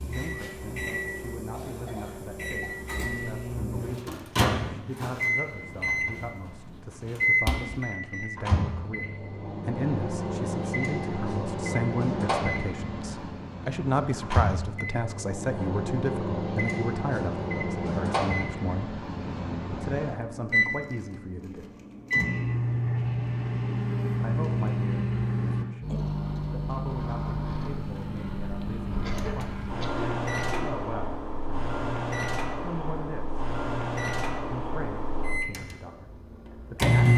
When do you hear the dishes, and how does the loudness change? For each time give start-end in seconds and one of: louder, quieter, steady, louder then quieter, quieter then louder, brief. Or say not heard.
not heard.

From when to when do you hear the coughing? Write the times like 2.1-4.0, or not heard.
1.5-2.9, 29.0-30.8.